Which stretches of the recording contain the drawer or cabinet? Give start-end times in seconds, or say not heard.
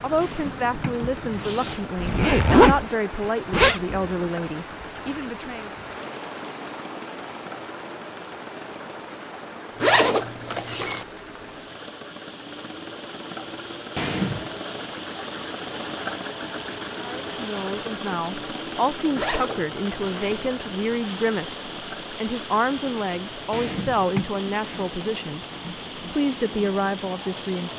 0.2-1.8, 13.9-14.6, 23.5-24.2.